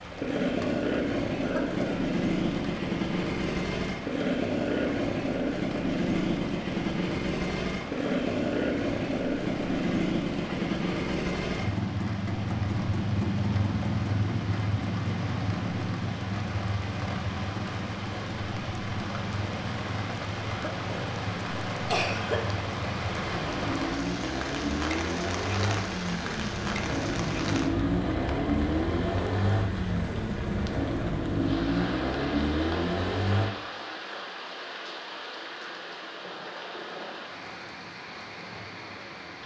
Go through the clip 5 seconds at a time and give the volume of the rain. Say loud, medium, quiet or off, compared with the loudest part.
medium, medium, medium, loud, loud, loud, loud, medium.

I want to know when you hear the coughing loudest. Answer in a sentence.
The volume of the coughing peaks at 22 seconds.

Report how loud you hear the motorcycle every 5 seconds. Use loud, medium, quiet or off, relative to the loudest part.
loud, loud, loud, medium, medium, loud, loud, off.